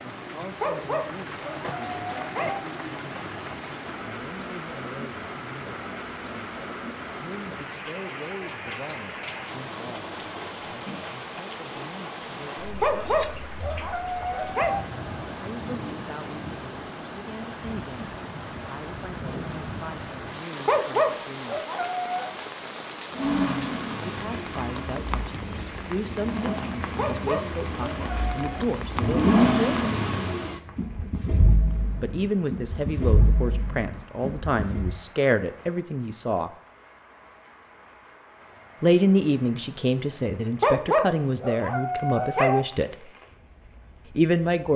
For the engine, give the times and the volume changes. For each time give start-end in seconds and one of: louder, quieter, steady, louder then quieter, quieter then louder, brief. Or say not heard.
23.1-35.0 louder then quieter.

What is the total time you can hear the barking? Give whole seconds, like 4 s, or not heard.
9 s.